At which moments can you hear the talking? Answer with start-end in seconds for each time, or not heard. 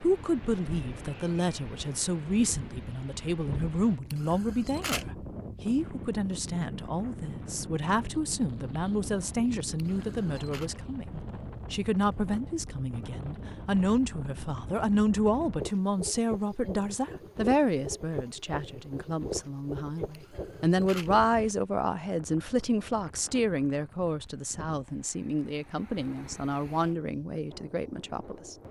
0.0-28.6.